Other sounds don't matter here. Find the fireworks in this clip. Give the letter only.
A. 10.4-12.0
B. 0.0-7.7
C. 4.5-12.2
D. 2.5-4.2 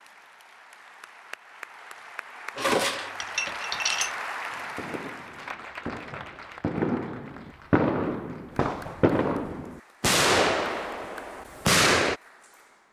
C.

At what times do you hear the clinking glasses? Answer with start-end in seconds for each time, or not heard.
2.5-4.2.